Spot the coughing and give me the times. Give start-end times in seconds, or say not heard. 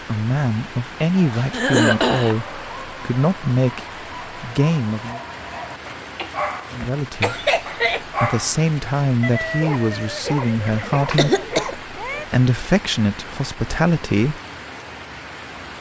1.5-2.4, 6.2-8.0, 10.7-11.8.